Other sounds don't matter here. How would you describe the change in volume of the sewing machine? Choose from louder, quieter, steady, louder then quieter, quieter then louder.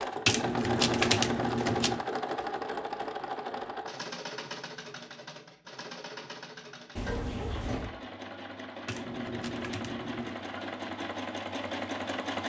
quieter then louder.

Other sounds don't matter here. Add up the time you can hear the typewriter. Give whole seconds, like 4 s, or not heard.
3 s.